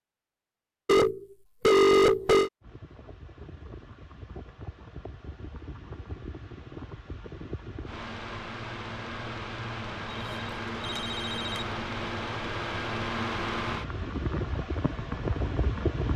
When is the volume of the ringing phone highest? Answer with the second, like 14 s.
2 s.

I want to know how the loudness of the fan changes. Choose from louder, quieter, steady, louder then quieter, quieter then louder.
louder.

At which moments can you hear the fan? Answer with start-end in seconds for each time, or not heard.
2.6-16.1.